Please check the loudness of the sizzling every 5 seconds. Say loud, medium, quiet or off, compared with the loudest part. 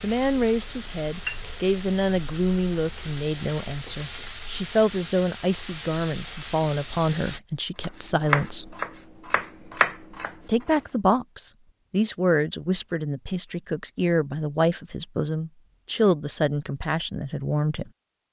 loud, loud, off, off.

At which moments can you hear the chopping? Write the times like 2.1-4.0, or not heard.
7.8-10.8.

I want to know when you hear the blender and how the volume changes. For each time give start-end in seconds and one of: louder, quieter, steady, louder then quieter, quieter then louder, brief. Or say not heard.
not heard.